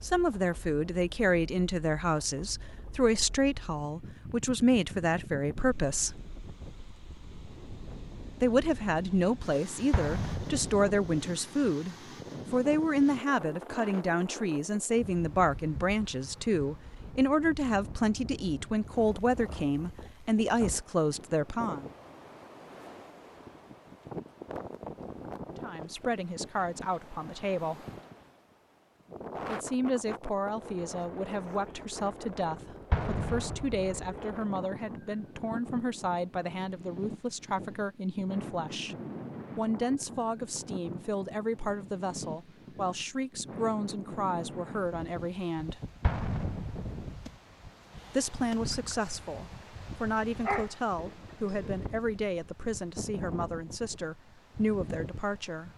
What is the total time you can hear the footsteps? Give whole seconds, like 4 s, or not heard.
not heard.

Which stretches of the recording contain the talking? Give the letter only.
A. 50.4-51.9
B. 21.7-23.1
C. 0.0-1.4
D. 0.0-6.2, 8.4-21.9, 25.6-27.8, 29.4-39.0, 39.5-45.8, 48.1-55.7
D.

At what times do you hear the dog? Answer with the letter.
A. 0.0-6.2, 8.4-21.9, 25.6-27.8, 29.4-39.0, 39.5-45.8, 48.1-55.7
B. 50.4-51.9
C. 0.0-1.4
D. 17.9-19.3
B.